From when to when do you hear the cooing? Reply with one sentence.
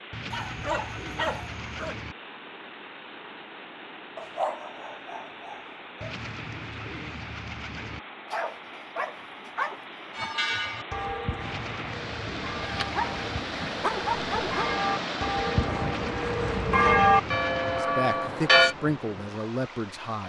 You can hear the cooing from 0.1 to 2.1 s, from 6.0 to 8.0 s, from 11.4 to 13.4 s and from 15.8 to 17.9 s.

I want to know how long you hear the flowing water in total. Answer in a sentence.
You can hear the flowing water for 20 seconds altogether.